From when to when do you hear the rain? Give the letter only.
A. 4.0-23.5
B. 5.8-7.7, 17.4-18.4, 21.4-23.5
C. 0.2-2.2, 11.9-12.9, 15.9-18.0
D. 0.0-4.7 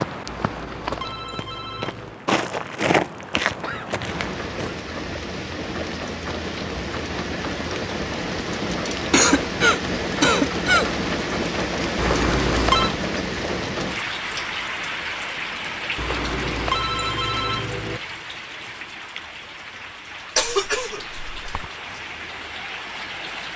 A.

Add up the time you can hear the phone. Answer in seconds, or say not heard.
5 s.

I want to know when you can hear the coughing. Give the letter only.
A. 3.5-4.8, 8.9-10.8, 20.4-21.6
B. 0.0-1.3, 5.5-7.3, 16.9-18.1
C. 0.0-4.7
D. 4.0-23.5
A.